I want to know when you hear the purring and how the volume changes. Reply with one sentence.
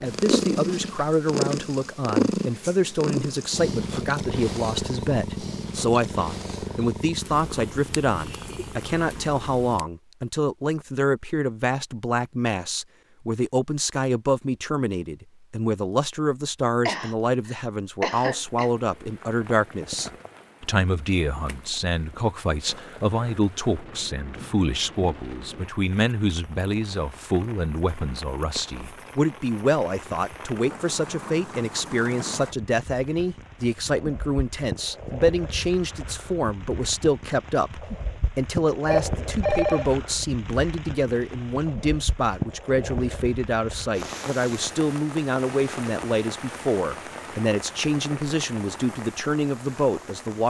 The purring can be heard from 0.0 to 9.8 s, getting quieter.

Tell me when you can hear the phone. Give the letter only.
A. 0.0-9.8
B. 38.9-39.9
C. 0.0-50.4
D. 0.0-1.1
B.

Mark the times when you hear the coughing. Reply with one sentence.
The coughing can be heard from 16.9 to 18.7 s.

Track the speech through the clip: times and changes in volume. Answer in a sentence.
You can hear the speech from 0.0 to 50.4 s, at a steady volume.